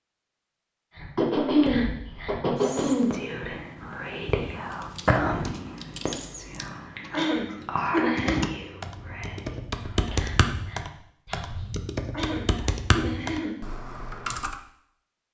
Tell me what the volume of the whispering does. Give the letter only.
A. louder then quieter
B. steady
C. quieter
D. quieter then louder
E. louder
A.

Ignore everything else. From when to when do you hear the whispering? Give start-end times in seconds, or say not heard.
0.9-11.7.